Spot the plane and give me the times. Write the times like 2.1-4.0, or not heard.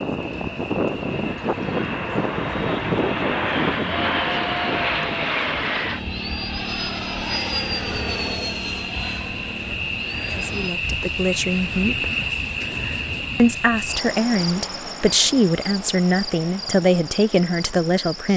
0.0-10.8.